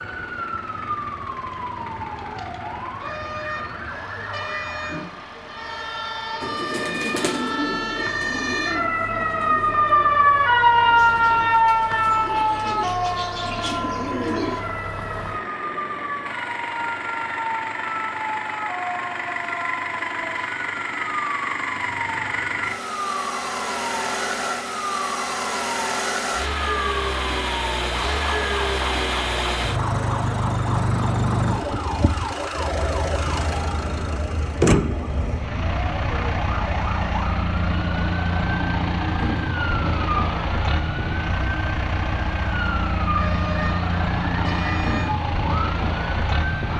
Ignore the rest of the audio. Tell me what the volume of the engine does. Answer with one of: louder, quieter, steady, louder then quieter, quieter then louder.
louder.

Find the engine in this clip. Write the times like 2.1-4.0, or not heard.
0.0-46.7.